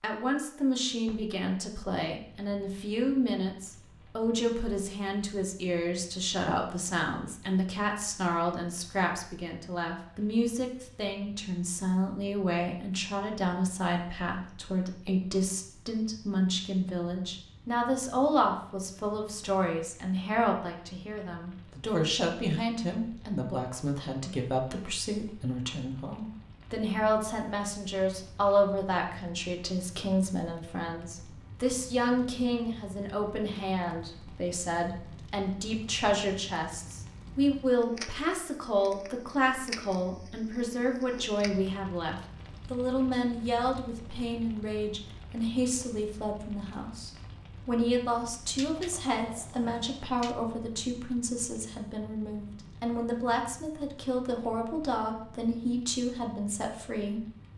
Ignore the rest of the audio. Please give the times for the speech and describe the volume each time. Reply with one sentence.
You can hear the speech from 0.0 to 57.5 s, at a steady volume.